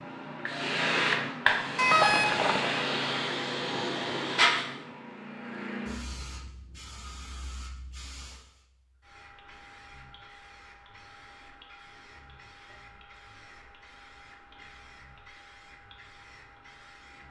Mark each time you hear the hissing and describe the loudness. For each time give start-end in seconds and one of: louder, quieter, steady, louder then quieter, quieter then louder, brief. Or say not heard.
0.0-17.2 quieter.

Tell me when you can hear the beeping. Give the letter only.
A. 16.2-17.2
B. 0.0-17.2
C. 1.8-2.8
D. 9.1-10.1
C.